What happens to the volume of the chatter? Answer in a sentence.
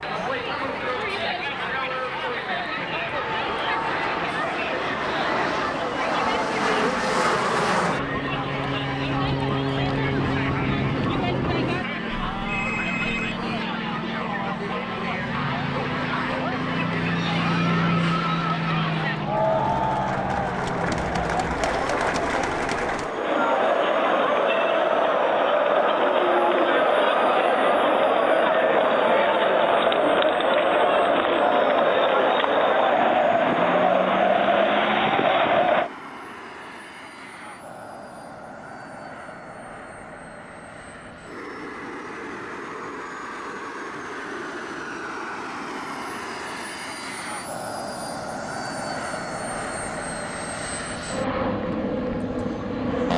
The volume of the chatter goes up.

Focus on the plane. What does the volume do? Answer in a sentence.
The volume of the plane goes down, then up.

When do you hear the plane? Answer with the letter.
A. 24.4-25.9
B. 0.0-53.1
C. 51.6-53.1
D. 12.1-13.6
B.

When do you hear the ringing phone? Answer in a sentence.
You can hear the ringing phone from 12.1 to 13.6 s.